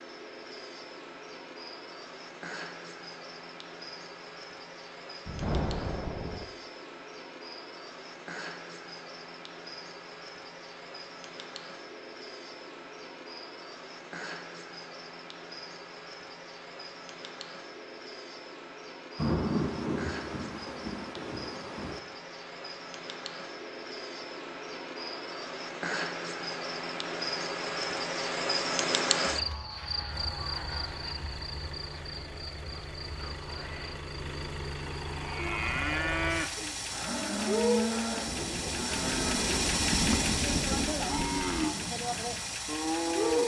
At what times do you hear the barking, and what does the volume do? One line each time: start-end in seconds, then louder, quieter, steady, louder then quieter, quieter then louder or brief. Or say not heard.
not heard.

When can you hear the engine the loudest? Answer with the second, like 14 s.
40 s.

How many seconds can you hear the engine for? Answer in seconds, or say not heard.
13 s.